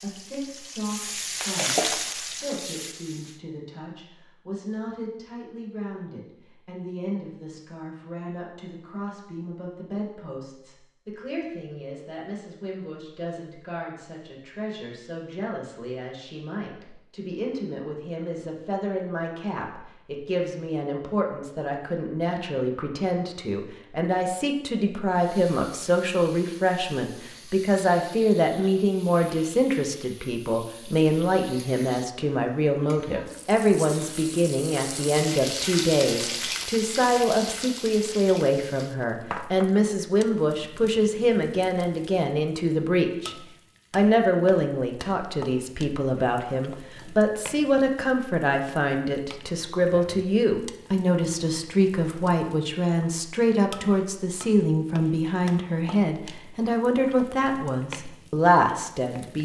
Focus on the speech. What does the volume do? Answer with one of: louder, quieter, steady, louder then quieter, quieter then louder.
louder.